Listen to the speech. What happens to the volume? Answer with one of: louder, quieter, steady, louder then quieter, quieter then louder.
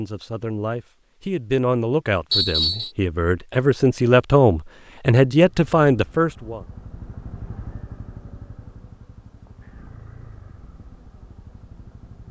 louder.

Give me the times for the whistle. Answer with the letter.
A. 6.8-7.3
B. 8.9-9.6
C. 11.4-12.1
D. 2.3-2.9
D.